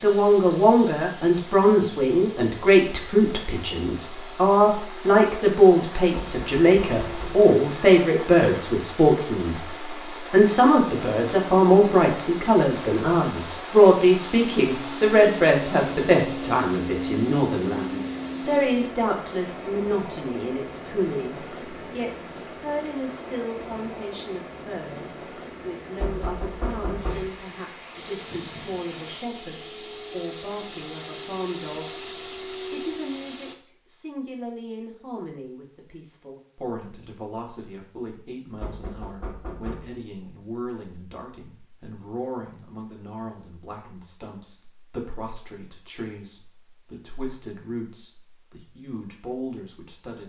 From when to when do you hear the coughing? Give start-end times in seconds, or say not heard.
not heard.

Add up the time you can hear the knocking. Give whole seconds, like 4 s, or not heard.
4 s.